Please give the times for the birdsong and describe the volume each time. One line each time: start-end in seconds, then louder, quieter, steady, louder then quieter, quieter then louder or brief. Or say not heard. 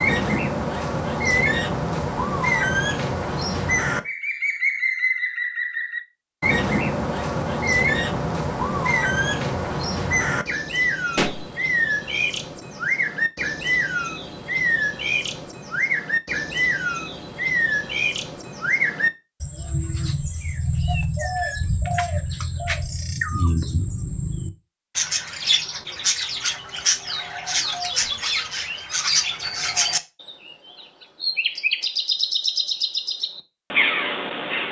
0.0-34.6 steady.